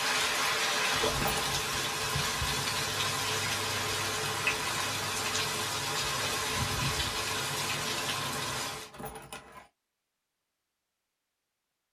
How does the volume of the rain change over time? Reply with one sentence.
The volume of the rain stays about the same.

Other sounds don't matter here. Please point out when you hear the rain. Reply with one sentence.
The rain can be heard from 0.0 to 8.9 s.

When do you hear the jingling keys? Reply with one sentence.
You can hear the jingling keys from 0.8 to 1.6 s and from 8.6 to 9.7 s.